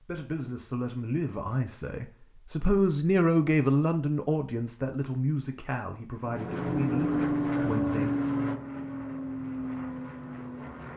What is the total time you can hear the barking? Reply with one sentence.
You can't hear the barking here.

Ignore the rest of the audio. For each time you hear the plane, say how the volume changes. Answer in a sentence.
You can hear the plane from 6.2 to 10.9 s, getting quieter.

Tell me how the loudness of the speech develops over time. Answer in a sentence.
The volume of the speech goes up, then down.